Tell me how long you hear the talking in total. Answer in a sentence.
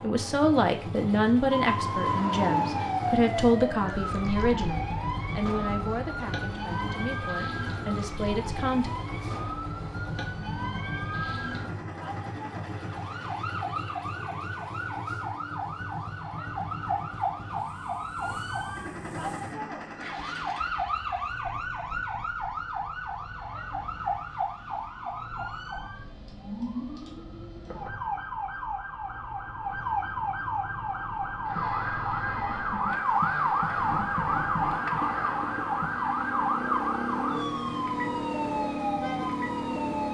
The talking can be heard for 9 seconds in total.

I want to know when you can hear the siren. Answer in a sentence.
The siren can be heard from 1.5 to 40.0 s.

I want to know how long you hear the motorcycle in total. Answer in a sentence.
You can hear the motorcycle for 40 seconds altogether.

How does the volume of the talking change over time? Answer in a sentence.
The volume of the talking goes down.